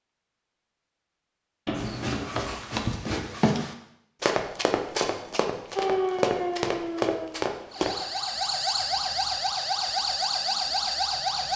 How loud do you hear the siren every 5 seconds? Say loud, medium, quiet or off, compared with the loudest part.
off, loud, loud.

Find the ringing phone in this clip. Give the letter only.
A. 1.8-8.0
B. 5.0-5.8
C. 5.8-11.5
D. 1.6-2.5
D.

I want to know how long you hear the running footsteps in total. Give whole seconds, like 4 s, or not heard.
6 s.